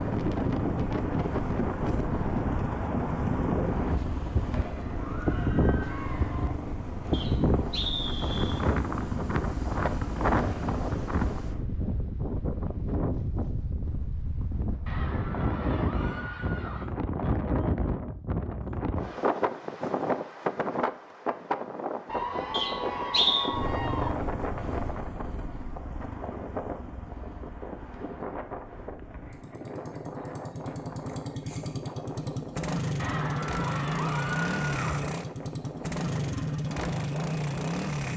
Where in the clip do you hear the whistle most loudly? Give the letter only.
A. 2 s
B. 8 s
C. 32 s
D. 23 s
D.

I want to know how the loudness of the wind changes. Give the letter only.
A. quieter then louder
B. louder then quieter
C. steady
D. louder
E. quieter
E.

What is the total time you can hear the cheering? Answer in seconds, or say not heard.
8 s.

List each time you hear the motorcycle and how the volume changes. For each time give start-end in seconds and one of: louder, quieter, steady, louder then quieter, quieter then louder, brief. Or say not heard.
0.0-11.7 steady
23.4-38.1 quieter then louder.